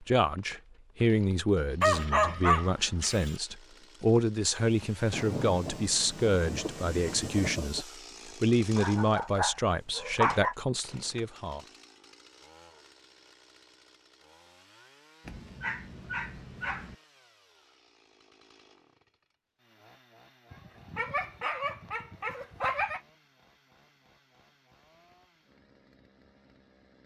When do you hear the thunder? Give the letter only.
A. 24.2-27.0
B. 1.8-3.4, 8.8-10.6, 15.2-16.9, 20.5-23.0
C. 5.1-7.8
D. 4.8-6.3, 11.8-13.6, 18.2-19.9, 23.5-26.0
C.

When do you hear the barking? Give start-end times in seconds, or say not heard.
1.8-3.4, 8.8-10.6, 15.2-16.9, 20.5-23.0.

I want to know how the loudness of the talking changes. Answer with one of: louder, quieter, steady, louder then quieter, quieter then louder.
steady.